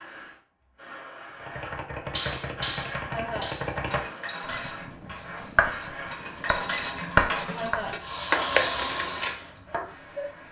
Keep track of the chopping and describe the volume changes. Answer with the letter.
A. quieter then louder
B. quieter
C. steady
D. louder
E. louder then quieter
E.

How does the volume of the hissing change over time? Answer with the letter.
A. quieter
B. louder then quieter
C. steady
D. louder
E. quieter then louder
D.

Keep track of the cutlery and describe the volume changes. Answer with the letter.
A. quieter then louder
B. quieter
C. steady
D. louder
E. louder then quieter
A.